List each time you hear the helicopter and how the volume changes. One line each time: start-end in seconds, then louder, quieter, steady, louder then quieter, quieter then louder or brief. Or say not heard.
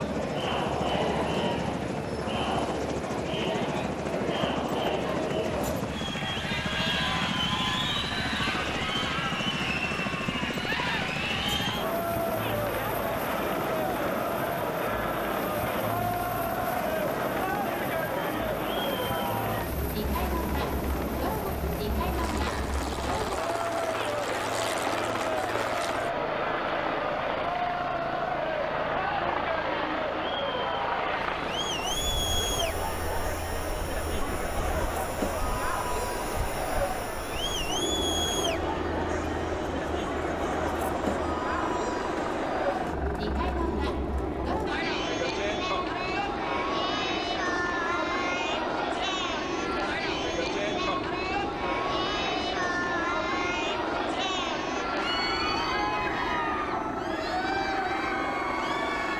0.0-59.1 steady.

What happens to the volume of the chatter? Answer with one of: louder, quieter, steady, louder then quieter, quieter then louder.
steady.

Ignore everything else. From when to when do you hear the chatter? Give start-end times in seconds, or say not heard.
0.0-59.1.